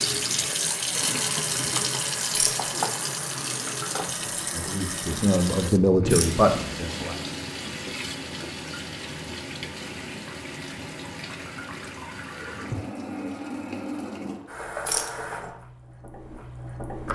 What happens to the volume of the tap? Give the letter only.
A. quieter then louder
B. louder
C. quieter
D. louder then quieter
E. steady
C.